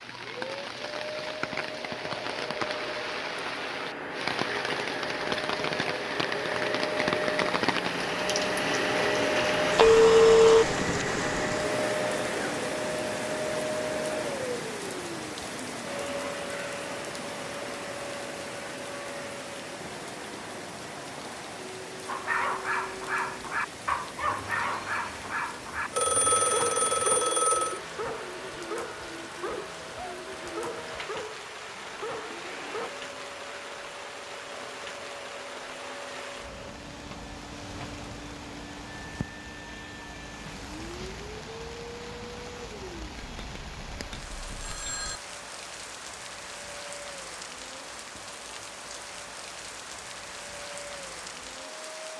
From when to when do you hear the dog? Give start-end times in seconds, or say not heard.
22.1-32.9.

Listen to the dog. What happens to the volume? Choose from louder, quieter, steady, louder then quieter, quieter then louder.
quieter.